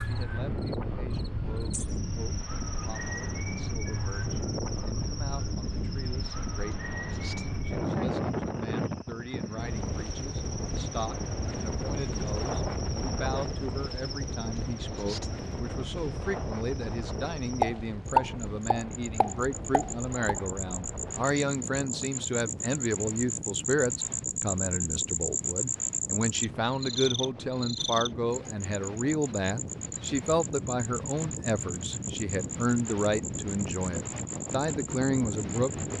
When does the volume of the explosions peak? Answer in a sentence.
The loudest moment of the explosions is at 18 seconds.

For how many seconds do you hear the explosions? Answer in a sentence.
You can hear the explosions for 3 seconds altogether.